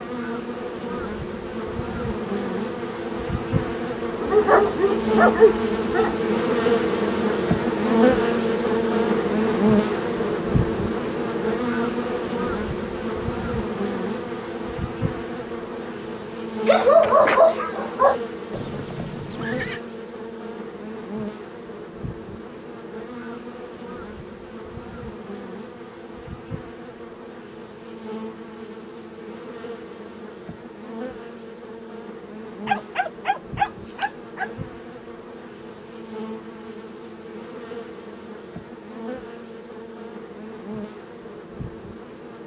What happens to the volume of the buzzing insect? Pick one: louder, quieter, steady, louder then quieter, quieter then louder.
quieter.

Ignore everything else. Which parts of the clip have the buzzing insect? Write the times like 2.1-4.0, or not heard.
0.0-42.4.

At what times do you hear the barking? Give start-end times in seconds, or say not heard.
4.2-6.2, 16.6-18.1, 32.6-34.5.